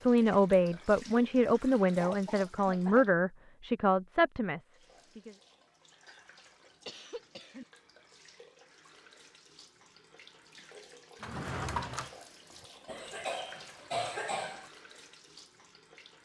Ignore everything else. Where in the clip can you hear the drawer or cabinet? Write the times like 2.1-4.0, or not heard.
11.2-12.7.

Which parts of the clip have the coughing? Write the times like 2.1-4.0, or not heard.
1.9-3.0, 6.0-7.7, 12.8-14.7.